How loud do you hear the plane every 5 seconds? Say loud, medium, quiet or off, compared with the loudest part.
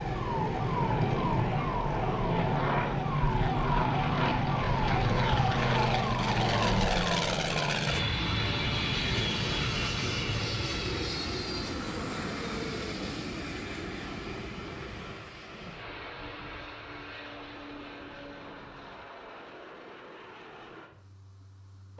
loud, loud, medium, quiet, quiet.